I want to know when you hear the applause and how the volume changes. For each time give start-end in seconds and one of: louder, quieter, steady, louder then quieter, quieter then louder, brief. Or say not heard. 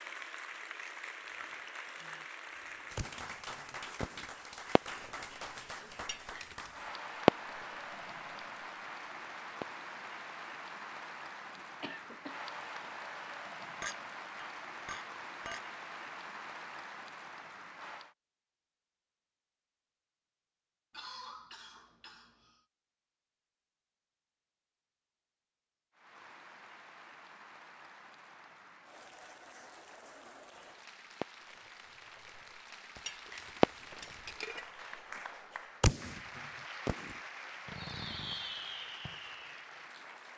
0.0-18.1 steady
25.9-40.3 louder.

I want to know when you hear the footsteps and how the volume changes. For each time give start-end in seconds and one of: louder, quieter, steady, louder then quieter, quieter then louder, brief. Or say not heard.
not heard.